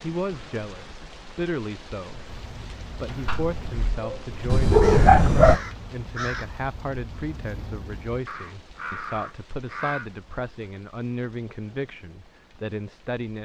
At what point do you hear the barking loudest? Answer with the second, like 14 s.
5 s.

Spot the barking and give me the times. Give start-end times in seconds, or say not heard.
3.2-5.6.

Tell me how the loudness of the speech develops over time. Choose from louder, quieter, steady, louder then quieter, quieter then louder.
steady.